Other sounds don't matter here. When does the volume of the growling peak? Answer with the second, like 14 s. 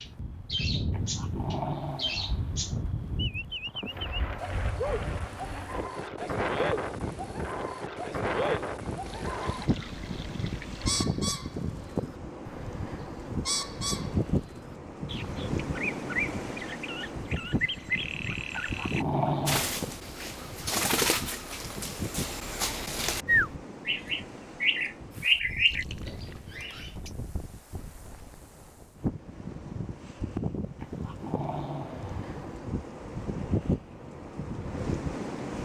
19 s.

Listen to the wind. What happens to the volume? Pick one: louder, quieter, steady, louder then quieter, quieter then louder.
quieter then louder.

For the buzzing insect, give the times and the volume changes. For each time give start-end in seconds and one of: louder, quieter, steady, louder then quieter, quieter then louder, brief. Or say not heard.
not heard.